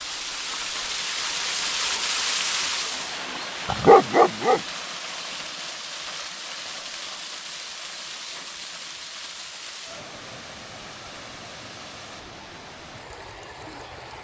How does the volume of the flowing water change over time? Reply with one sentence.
The loudness of the flowing water goes down.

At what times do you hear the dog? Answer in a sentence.
You can hear the dog from 3.6 to 4.6 s.